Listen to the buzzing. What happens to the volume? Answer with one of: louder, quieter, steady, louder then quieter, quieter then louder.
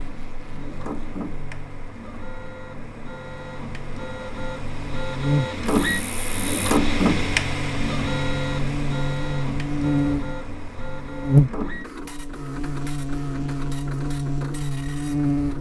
louder then quieter.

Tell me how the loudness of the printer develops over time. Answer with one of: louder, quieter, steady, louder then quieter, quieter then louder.
louder then quieter.